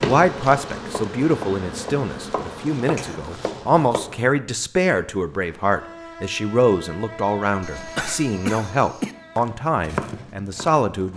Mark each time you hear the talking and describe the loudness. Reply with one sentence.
You can hear the talking from 0.0 to 11.1 s, at a steady volume.